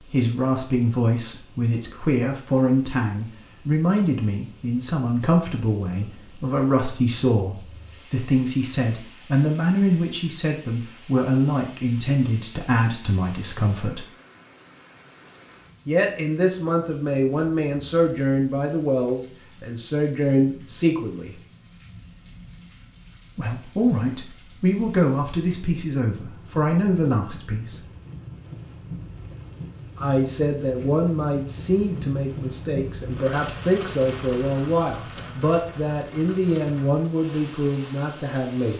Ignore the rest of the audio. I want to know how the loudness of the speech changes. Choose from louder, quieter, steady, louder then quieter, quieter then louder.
steady.